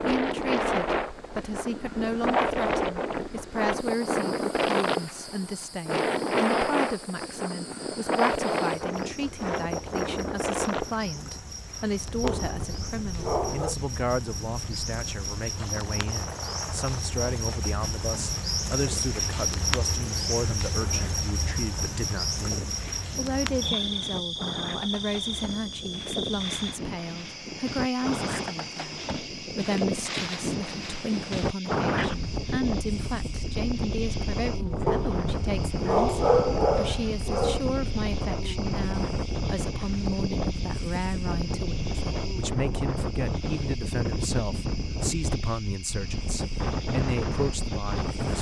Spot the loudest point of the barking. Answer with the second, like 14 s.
36 s.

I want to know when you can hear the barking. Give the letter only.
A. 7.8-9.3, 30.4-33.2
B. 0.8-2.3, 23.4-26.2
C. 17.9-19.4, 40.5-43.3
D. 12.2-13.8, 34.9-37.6
D.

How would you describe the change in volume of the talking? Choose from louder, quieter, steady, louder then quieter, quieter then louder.
steady.